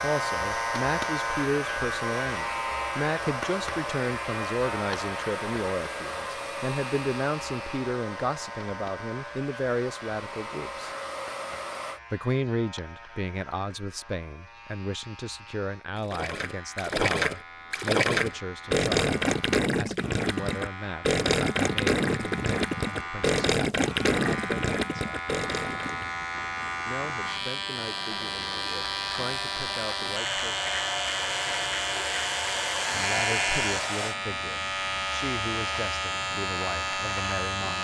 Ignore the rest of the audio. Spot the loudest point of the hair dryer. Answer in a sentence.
The volume of the hair dryer peaks at 33 seconds.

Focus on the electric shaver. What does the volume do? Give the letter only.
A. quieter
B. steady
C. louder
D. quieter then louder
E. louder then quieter
D.